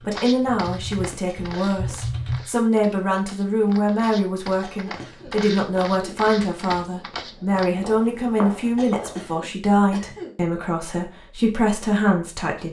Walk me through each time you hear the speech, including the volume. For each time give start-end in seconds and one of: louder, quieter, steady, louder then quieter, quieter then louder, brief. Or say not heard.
0.0-12.6 steady.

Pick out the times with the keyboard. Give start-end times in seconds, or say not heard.
0.0-2.4.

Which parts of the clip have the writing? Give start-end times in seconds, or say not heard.
not heard.